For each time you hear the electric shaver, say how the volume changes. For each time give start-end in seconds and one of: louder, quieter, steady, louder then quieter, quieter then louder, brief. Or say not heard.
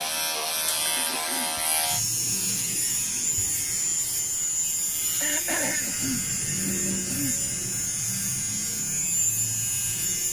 0.0-10.2 steady.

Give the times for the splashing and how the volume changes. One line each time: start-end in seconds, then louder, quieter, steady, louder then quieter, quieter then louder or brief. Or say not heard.
not heard.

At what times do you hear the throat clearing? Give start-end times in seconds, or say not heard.
0.9-1.6, 5.2-7.4.